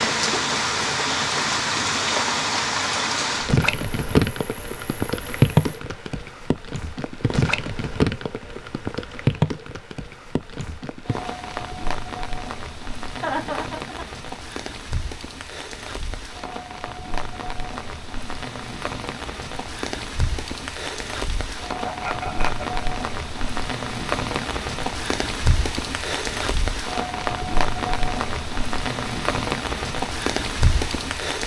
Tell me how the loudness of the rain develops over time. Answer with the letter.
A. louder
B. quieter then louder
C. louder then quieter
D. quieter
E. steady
B.